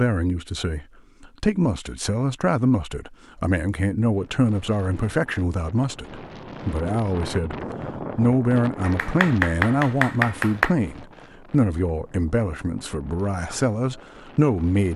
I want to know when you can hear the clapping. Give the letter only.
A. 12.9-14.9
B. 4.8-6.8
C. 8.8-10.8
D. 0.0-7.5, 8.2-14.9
C.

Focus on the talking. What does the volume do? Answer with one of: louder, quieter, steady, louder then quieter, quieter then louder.
steady.